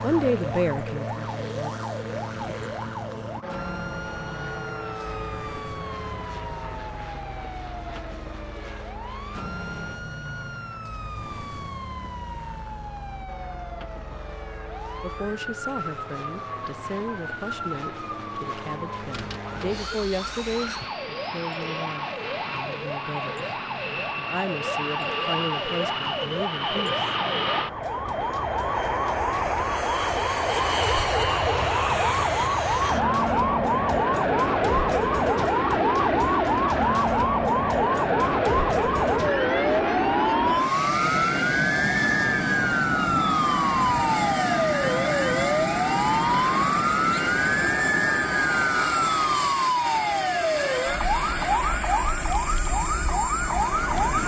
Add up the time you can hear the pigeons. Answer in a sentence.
You can't hear the pigeons here.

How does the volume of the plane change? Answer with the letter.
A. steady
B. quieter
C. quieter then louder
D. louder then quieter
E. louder
E.